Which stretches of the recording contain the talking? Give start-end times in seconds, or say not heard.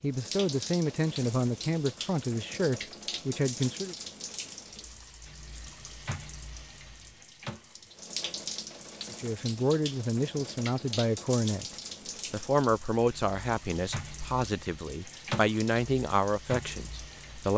0.0-4.0, 9.1-11.7, 12.3-17.5.